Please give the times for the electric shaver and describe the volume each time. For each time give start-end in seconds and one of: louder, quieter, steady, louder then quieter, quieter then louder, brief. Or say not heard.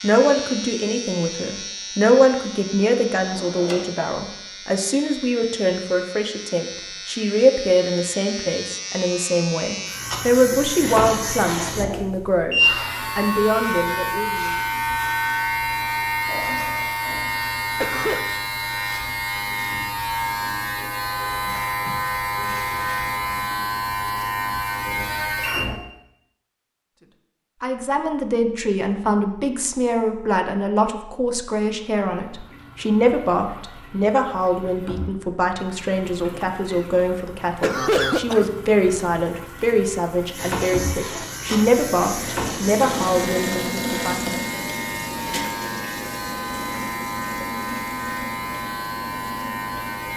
0.0-25.8 louder
40.3-50.1 steady.